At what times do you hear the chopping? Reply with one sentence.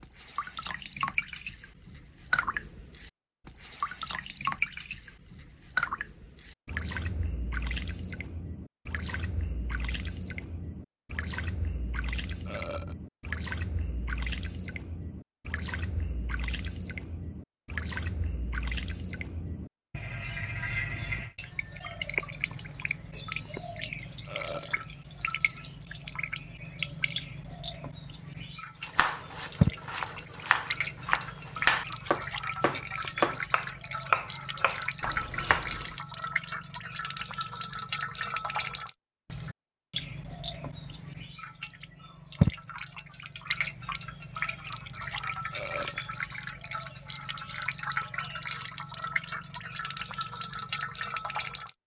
You can hear the chopping from 28.9 to 36.0 s.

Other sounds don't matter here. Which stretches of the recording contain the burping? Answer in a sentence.
The burping can be heard from 12.4 to 12.9 s, from 24.2 to 24.8 s and from 45.5 to 46.0 s.